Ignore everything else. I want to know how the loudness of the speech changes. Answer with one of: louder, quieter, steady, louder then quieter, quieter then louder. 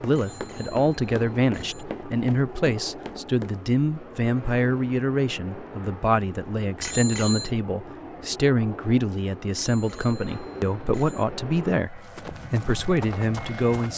steady.